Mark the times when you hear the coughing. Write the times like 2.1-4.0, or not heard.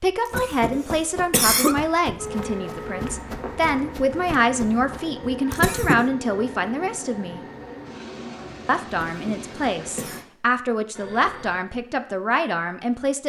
0.2-1.8, 5.5-6.0, 9.1-10.2.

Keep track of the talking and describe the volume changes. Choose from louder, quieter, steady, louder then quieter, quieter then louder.
steady.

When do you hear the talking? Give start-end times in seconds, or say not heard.
0.0-7.5, 8.7-13.2.